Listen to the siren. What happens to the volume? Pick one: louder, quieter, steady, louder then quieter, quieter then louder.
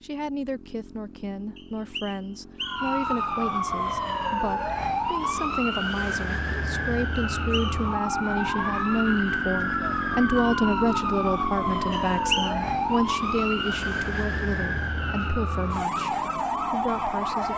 steady.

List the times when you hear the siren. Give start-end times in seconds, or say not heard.
2.6-17.5.